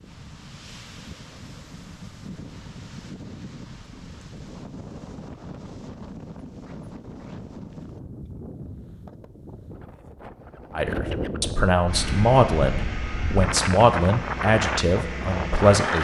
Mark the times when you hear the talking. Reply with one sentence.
You can hear the talking from 10.8 to 15.9 s.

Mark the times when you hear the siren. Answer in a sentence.
You can't hear the siren here.